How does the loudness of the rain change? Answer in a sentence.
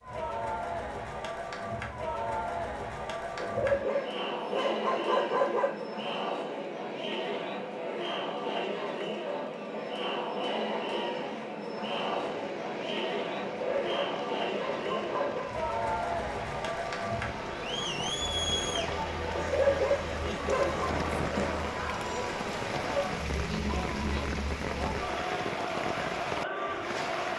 The loudness of the rain goes up.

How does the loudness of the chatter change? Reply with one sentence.
The volume of the chatter stays about the same.